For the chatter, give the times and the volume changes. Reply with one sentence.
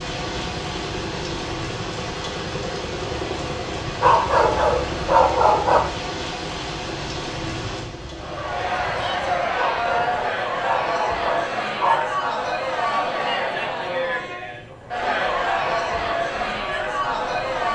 The chatter can be heard from 8.2 to 17.7 s, at a steady volume.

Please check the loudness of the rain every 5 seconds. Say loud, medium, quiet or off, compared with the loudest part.
loud, loud, off, off.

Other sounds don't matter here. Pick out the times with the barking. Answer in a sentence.
You can hear the barking from 4.0 to 5.8 s and from 9.6 to 12.1 s.